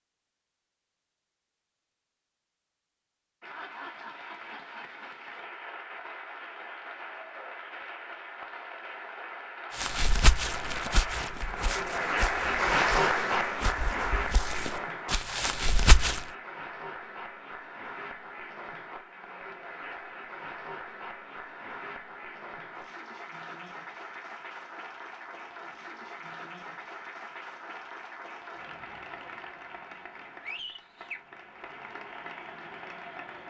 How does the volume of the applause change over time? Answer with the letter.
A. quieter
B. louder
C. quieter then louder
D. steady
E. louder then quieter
E.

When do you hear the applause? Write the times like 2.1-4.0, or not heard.
3.4-33.4.